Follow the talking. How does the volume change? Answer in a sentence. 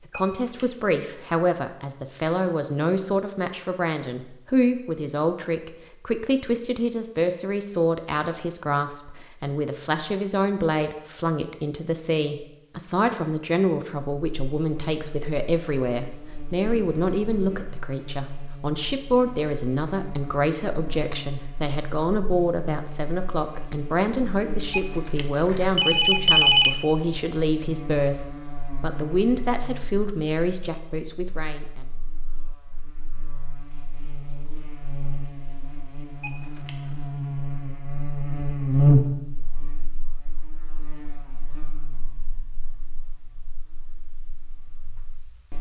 The volume of the talking stays about the same.